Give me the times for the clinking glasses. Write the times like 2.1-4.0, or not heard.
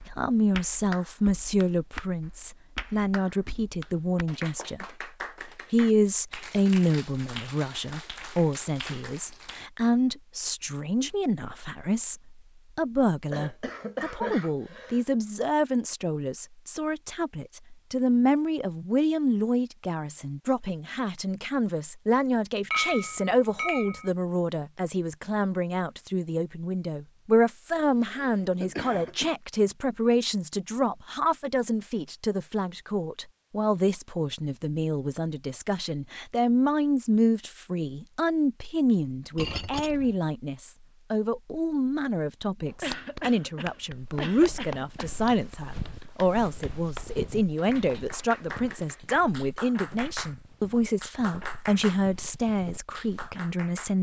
22.7-24.1, 39.4-40.1.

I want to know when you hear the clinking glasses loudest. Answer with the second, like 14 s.
23 s.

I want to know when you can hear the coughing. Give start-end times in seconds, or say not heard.
13.3-15.2, 27.9-29.4, 42.8-45.2.